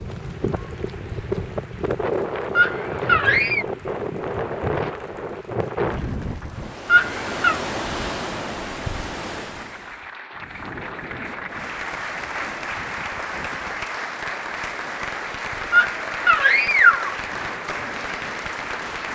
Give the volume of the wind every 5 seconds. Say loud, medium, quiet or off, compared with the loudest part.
loud, loud, quiet, quiet.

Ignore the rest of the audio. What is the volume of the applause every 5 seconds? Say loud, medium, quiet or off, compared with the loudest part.
quiet, quiet, loud, loud.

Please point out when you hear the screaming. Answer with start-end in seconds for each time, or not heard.
2.5-3.6, 6.8-7.6, 15.7-17.1.